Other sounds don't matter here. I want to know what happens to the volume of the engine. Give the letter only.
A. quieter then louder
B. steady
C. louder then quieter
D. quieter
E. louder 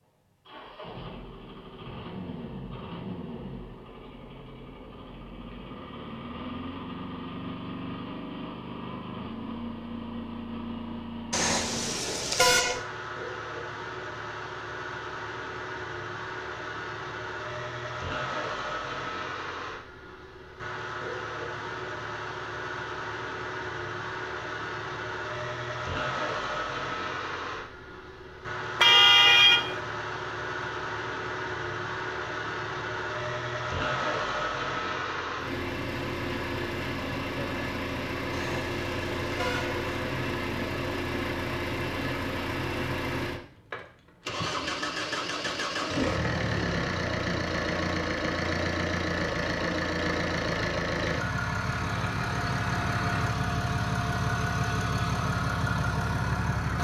E.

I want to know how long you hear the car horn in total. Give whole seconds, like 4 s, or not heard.
4 s.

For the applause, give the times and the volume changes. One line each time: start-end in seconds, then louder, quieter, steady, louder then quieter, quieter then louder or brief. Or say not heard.
not heard.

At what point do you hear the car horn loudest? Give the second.
29 s.